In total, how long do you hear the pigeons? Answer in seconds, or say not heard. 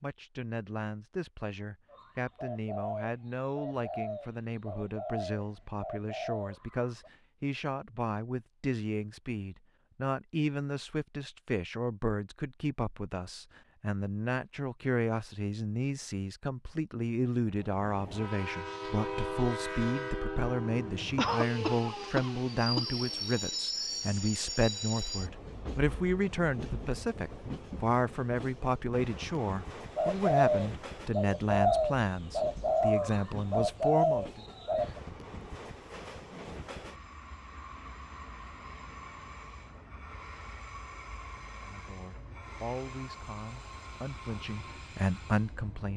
10 s.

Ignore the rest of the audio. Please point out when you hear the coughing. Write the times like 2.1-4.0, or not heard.
21.1-22.9.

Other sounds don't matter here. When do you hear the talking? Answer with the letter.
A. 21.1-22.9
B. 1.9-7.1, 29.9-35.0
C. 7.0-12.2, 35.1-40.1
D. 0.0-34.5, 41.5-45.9
D.